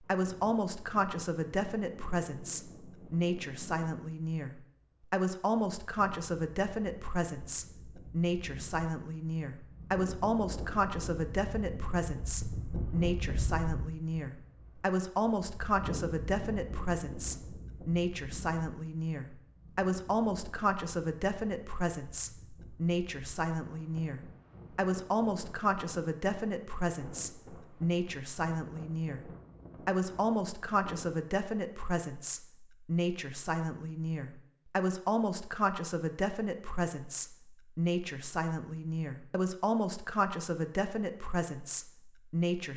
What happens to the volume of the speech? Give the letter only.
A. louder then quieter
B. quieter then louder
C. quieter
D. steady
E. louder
D.